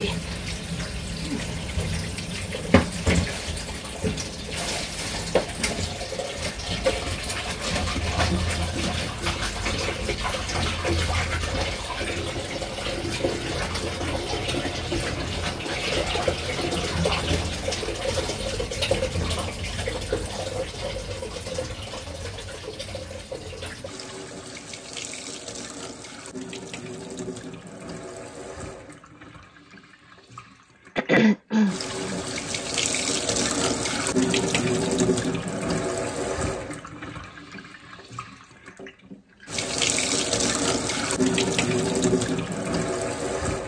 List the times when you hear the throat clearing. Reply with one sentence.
You can hear the throat clearing from 30.9 to 32.2 s.